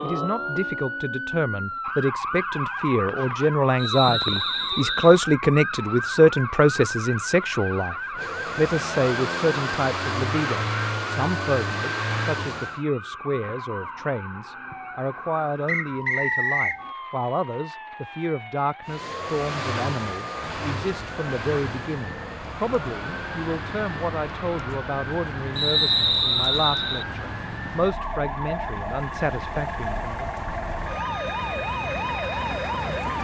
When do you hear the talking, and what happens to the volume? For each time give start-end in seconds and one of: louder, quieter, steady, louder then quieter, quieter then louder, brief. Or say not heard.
0.0-8.0 louder
8.6-30.2 steady.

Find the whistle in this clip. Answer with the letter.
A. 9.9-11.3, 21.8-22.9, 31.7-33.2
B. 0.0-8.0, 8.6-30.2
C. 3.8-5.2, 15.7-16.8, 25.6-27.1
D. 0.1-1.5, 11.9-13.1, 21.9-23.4
C.